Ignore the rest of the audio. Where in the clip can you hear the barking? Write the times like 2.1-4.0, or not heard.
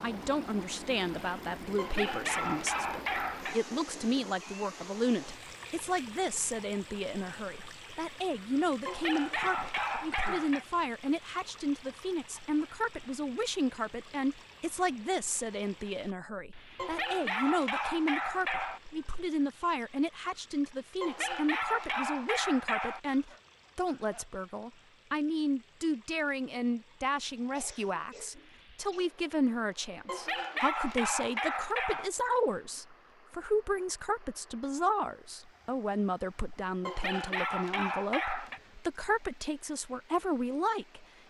1.8-3.6, 8.8-10.7, 16.8-18.8, 21.0-23.0, 30.1-32.1, 36.9-38.6.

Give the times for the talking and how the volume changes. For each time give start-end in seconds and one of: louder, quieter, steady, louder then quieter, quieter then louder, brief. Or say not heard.
0.0-41.0 steady.